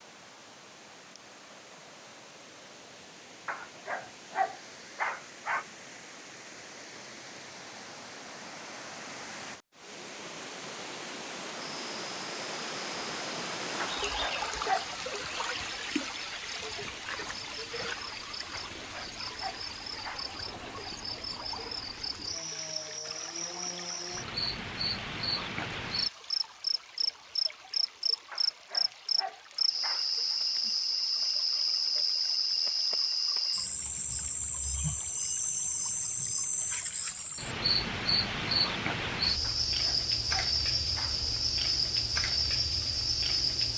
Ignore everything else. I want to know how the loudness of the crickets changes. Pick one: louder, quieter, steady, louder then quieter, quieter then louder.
louder.